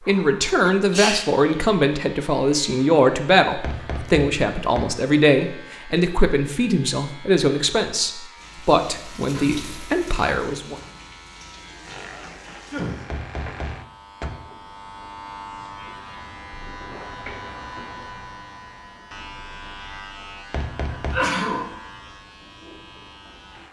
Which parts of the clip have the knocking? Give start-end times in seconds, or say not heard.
3.6-4.8, 13.1-14.3, 20.5-21.2.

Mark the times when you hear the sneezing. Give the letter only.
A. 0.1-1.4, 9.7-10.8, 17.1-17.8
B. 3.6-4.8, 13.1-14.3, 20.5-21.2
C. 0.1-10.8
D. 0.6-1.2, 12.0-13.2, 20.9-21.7
D.